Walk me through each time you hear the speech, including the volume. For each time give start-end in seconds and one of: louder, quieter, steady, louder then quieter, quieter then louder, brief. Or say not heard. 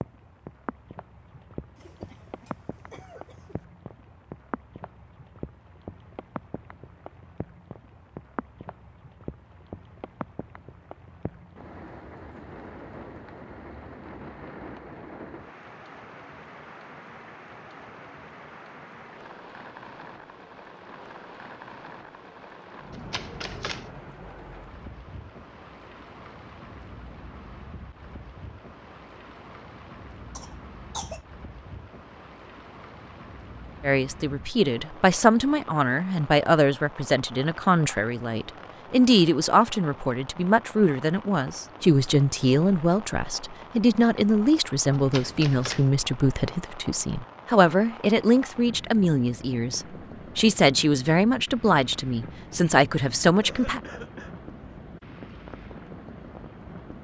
33.8-53.8 steady.